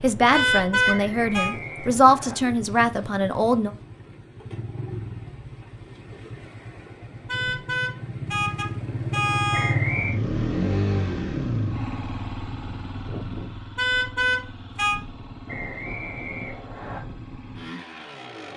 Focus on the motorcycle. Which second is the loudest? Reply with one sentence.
The loudest moment of the motorcycle is at 10 seconds.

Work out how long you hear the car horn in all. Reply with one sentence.
The car horn can be heard for 5 seconds in total.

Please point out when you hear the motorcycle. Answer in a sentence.
The motorcycle can be heard from 0.0 to 18.5 s.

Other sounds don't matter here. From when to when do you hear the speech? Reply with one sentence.
You can hear the speech from 0.0 to 3.7 s.